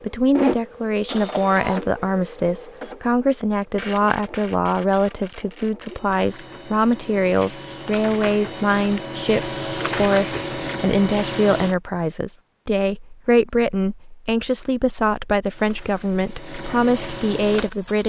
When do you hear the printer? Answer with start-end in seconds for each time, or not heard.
0.0-11.8, 15.5-18.0.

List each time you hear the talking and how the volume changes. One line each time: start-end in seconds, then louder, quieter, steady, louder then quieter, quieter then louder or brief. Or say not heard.
0.0-18.0 steady.